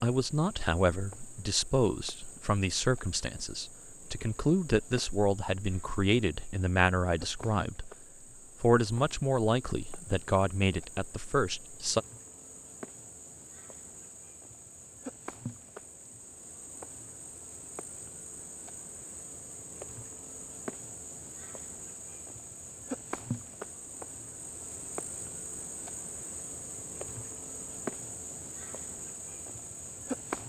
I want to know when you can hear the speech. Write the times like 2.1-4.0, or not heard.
0.0-7.9, 8.6-12.0.